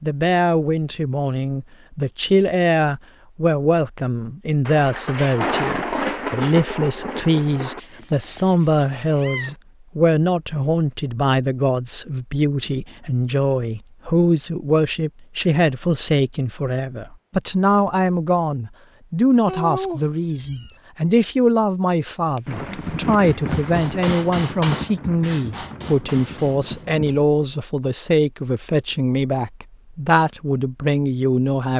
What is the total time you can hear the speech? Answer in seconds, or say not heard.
32 s.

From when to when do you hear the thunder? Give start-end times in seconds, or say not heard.
4.7-7.8, 22.4-27.2.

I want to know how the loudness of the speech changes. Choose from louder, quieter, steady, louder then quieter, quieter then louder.
steady.